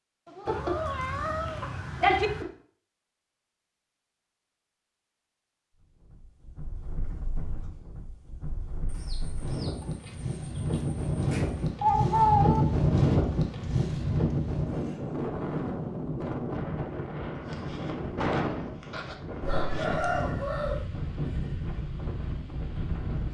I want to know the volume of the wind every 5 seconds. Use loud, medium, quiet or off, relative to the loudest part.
off, quiet, loud, medium, medium.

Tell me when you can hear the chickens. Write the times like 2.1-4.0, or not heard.
0.5-2.5, 8.8-11.7, 19.4-20.9.